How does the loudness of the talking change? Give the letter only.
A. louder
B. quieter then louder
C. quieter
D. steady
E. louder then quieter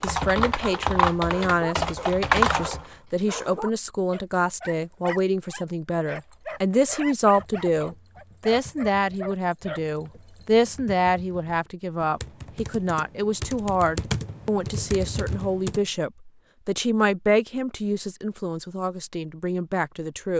D.